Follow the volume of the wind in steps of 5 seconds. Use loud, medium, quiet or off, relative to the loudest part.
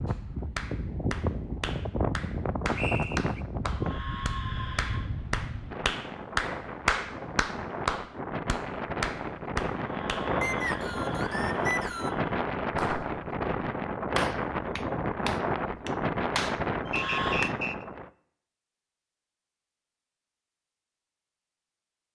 loud, medium, loud, loud, off.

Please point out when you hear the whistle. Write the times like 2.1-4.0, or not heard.
2.8-3.5, 10.4-12.2, 16.9-17.9.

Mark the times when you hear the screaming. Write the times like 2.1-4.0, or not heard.
3.7-5.1, 9.8-12.2, 16.9-17.5.